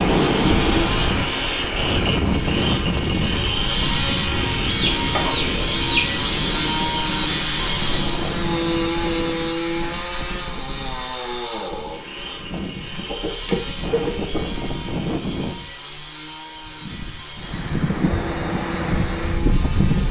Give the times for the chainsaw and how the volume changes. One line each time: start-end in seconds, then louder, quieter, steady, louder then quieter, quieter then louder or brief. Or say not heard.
0.0-20.0 quieter.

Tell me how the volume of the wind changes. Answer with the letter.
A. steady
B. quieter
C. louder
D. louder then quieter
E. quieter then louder
E.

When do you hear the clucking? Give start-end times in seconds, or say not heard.
4.7-6.2, 13.1-14.5.